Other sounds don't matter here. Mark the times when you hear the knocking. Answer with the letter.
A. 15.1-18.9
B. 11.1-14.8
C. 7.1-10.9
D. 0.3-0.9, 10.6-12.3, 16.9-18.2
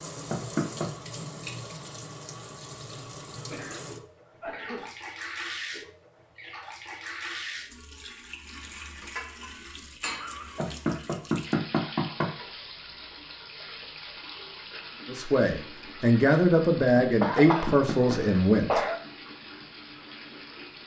D.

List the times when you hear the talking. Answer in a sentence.
The talking can be heard from 15.1 to 18.9 s.